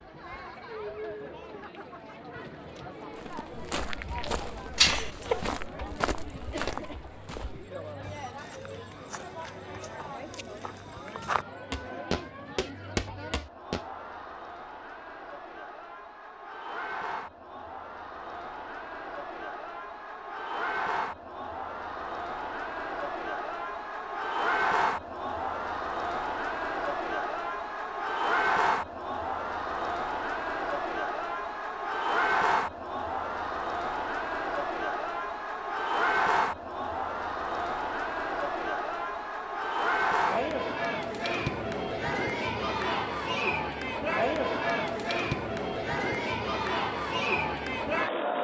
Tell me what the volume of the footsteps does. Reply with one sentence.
The loudness of the footsteps goes down, then up.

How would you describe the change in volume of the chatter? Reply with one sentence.
The volume of the chatter goes up.